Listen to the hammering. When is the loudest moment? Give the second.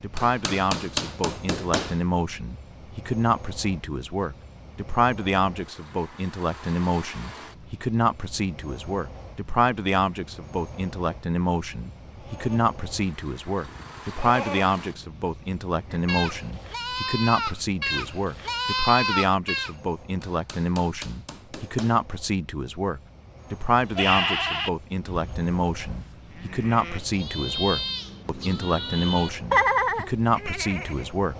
1 s.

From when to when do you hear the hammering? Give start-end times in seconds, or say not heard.
0.1-2.0, 20.1-22.1.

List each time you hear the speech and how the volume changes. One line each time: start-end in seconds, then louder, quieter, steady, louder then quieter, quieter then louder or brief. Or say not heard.
0.0-31.3 steady.